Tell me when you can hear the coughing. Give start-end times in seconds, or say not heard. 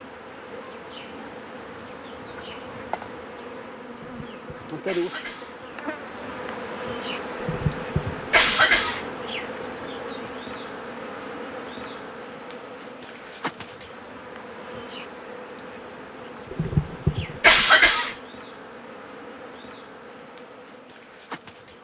3.9-5.5, 7.4-9.1, 16.5-18.1.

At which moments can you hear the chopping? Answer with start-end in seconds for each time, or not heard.
not heard.